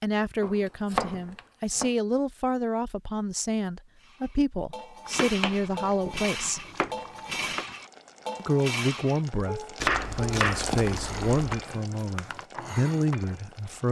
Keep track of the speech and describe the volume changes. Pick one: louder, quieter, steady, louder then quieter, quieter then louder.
steady.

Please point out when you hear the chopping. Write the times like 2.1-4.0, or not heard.
0.4-1.9, 5.2-7.7, 9.8-11.7.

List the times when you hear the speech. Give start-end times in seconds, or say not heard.
0.0-6.6, 8.3-13.8.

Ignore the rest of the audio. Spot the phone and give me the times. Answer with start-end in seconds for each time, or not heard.
not heard.